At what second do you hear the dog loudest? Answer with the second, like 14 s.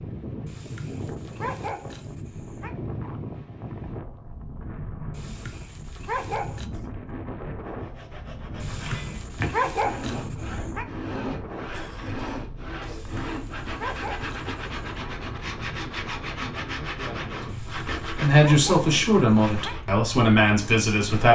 10 s.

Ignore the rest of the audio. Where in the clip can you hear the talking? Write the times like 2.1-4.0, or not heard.
16.6-21.3.